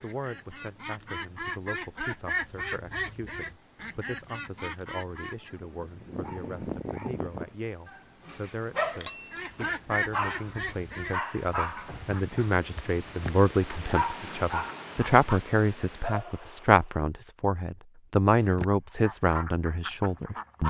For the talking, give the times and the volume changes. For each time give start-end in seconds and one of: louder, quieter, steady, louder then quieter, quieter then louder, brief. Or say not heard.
0.0-20.6 louder.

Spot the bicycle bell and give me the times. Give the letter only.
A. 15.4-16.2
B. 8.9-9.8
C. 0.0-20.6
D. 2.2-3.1
B.